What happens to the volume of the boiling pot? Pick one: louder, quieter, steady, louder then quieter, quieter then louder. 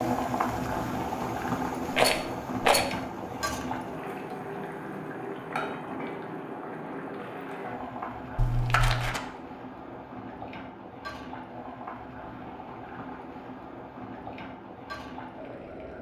quieter.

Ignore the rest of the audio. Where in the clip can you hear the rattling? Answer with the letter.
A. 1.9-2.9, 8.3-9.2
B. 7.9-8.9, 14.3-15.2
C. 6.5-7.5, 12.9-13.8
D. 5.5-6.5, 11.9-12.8
A.